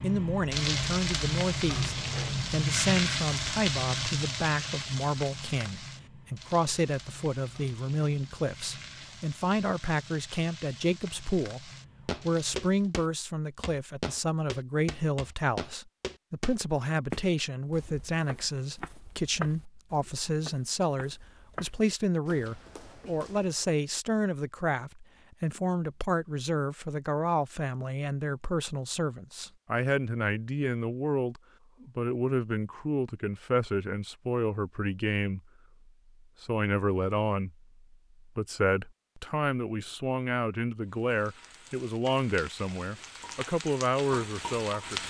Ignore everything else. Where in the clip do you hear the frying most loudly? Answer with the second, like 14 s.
3 s.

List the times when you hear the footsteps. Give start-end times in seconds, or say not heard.
12.1-23.6.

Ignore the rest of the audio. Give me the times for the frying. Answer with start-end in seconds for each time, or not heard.
0.0-12.9, 40.9-45.0.